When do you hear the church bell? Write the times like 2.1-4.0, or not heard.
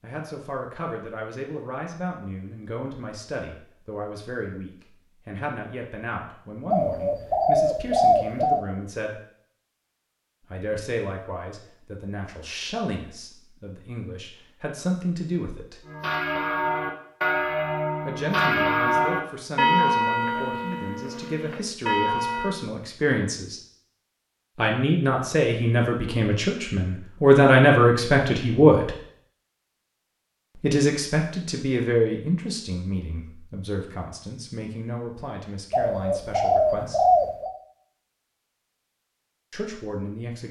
15.8-22.6.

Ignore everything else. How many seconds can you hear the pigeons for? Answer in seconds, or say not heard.
4 s.